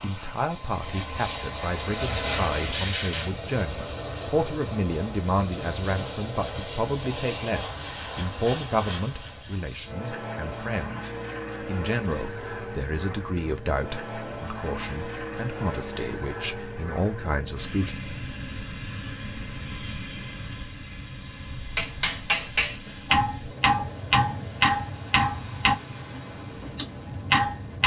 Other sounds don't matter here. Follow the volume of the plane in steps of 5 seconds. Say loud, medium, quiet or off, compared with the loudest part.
loud, loud, loud, loud, medium, medium.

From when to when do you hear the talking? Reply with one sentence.
The talking can be heard from 0.0 to 17.9 s.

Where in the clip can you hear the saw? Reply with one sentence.
The saw can't be heard in this clip.